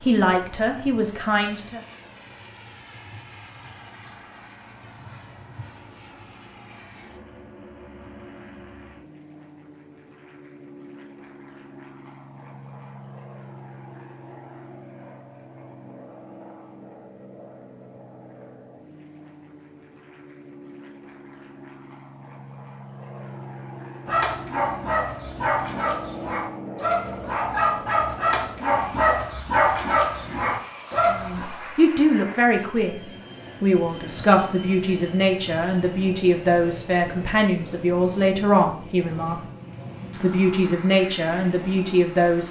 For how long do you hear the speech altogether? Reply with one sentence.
You can hear the speech for 12 seconds altogether.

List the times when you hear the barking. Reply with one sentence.
The barking can be heard from 24.1 to 31.4 s.